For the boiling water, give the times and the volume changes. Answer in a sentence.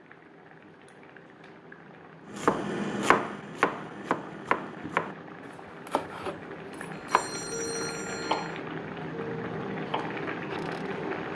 The boiling water can be heard from 0.0 to 11.2 s, getting louder.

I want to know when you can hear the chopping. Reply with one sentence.
The chopping can be heard from 2.3 to 10.9 s.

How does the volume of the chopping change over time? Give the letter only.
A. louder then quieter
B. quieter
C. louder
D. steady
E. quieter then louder
B.